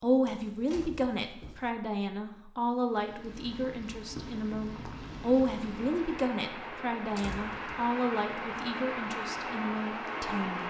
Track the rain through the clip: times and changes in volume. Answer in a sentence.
The rain can be heard from 2.8 to 10.6 s, getting louder.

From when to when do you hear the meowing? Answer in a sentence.
You can't hear the meowing here.